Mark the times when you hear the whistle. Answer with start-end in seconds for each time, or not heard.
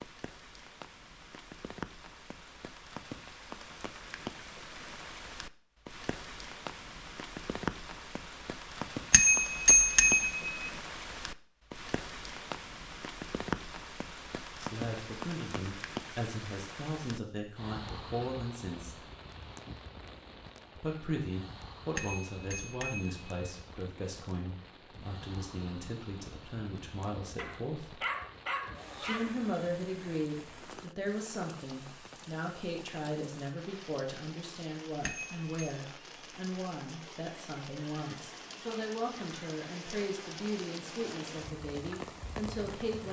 not heard.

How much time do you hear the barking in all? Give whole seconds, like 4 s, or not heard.
2 s.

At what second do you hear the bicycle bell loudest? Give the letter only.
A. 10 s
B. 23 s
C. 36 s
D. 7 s
A.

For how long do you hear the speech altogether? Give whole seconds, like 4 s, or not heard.
26 s.